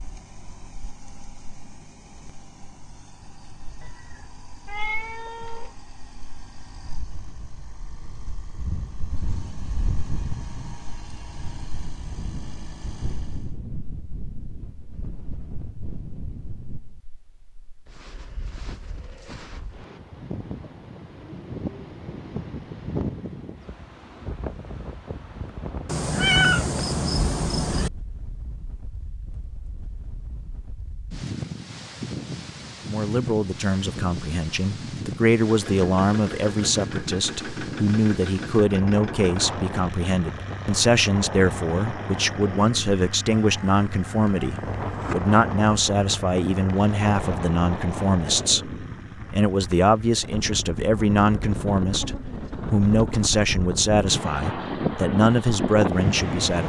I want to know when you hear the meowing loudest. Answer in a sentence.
The loudest moment of the meowing is at 26 seconds.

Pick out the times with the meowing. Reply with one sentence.
The meowing can be heard from 3.8 to 5.8 s, from 25.9 to 27.9 s and from 43.4 to 45.1 s.